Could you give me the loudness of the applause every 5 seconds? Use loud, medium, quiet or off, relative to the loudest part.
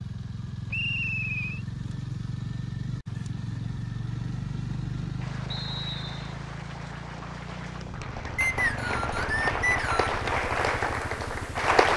off, medium, loud.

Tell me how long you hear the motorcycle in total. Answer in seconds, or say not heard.
12 s.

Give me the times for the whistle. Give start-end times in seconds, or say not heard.
0.7-1.6, 5.5-6.3, 8.3-10.2.